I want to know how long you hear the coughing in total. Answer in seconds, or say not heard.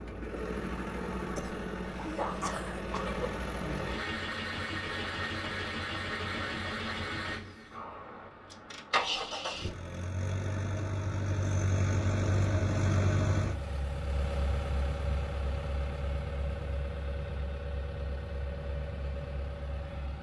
2 s.